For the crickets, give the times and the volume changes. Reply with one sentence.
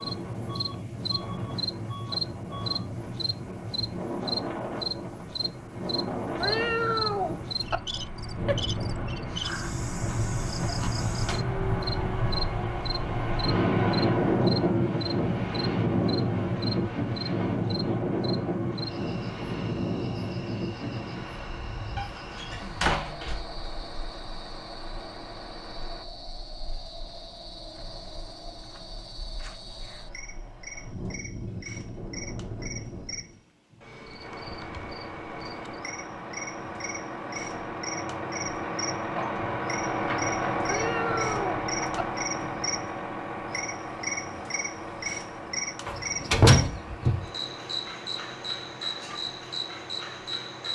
You can hear the crickets from 0.0 to 50.7 s, getting quieter then louder.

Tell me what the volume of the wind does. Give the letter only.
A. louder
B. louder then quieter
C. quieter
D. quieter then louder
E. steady
B.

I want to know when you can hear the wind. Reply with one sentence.
You can hear the wind from 0.0 to 33.4 s.